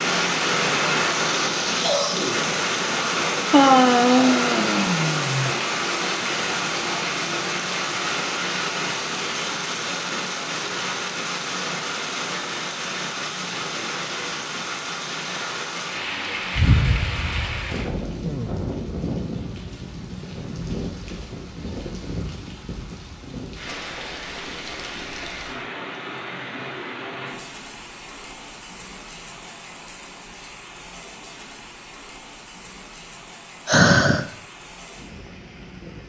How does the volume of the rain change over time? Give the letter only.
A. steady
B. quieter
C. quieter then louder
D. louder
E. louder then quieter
B.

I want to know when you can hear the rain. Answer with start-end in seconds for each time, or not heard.
0.0-36.0.